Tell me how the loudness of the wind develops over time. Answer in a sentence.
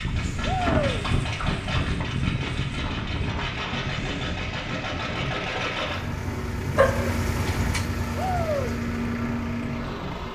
The volume of the wind goes down.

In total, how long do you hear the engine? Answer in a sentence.
The engine can be heard for 10 seconds in total.